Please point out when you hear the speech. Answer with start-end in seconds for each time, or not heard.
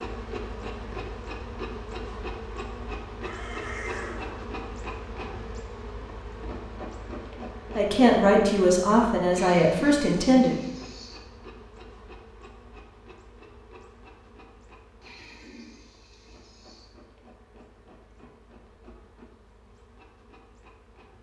7.8-10.6.